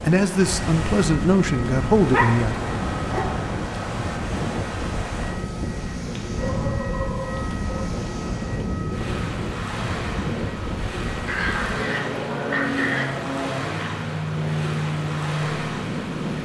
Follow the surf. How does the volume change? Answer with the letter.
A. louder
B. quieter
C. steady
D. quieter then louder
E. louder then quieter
C.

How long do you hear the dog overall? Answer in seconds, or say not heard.
5 s.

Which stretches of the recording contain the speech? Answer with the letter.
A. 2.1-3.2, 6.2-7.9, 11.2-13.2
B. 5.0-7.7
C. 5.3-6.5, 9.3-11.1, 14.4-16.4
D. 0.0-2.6
D.